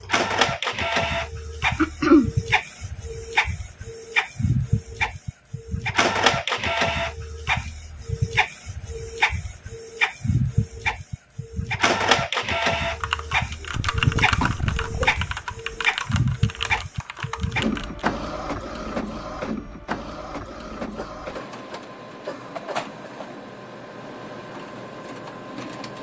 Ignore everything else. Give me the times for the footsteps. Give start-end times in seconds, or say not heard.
not heard.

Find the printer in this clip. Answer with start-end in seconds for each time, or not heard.
0.0-25.9.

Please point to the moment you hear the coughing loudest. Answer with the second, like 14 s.
2 s.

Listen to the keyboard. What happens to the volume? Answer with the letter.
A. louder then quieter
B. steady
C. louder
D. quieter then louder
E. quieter
E.